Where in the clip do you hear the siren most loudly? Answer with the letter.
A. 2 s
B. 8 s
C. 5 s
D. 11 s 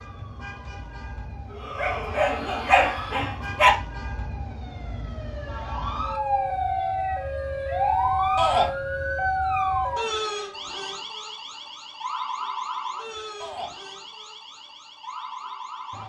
B.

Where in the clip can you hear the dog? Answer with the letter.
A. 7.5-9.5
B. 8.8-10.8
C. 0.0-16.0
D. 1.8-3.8
D.